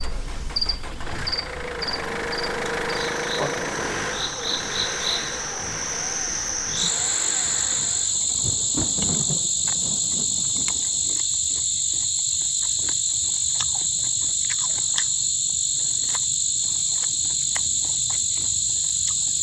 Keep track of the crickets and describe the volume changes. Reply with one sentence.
The loudness of the crickets goes up.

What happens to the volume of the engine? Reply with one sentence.
The loudness of the engine goes up, then down.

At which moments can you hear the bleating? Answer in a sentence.
You can't hear the bleating here.